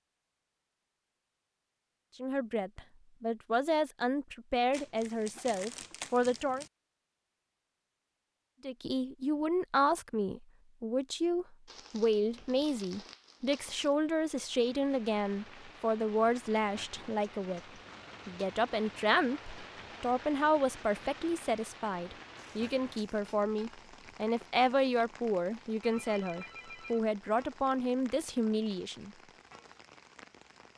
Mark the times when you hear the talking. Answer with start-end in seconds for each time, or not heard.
2.1-6.7, 8.6-17.6, 18.2-29.1.